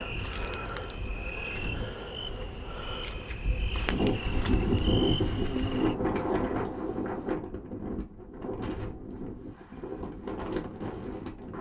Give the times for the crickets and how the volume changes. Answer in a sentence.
You can hear the crickets from 0.0 to 6.0 s, at a steady volume.